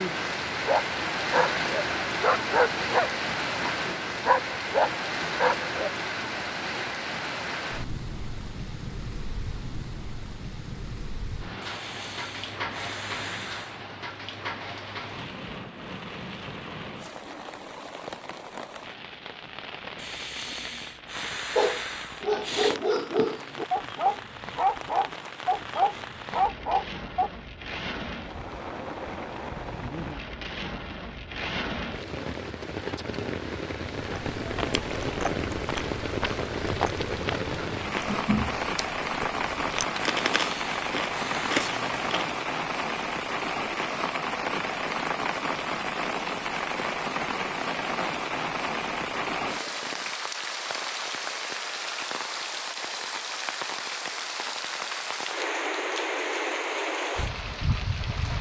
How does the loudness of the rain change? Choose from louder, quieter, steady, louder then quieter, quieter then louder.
quieter then louder.